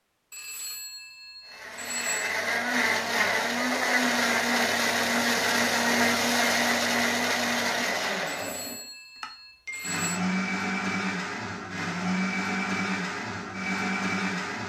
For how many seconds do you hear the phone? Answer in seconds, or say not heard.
4 s.